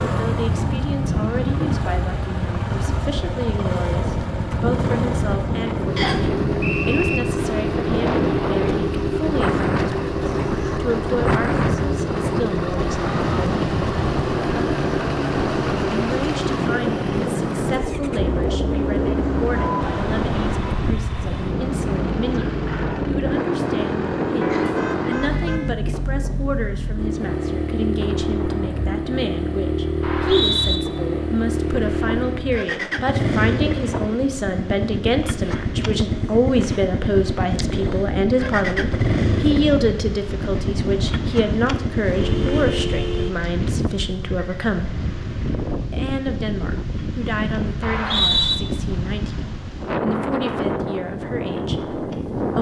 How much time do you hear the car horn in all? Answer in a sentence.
You can hear the car horn for 4 seconds altogether.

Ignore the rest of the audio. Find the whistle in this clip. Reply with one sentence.
The whistle can be heard from 6.0 to 7.2 s, from 30.0 to 30.8 s and from 47.8 to 48.5 s.